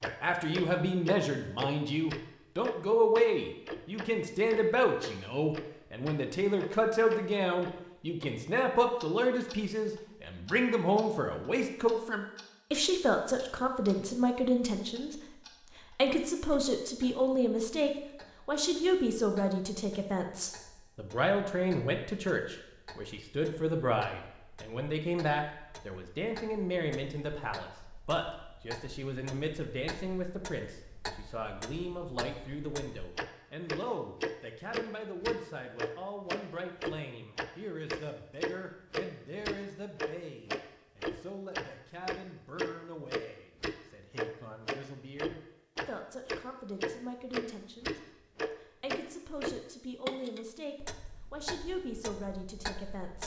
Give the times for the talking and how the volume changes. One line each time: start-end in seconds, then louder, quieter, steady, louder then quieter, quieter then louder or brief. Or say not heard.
0.0-53.2 quieter.